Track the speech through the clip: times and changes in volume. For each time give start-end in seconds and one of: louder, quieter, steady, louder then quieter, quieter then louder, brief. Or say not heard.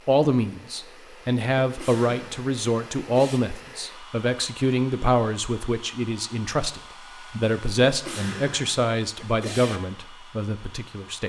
0.1-11.2 steady.